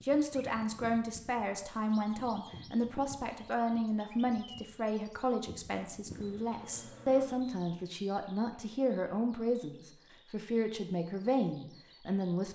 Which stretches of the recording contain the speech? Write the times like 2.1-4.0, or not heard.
0.0-12.5.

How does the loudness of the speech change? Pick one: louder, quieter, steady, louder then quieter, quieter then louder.
steady.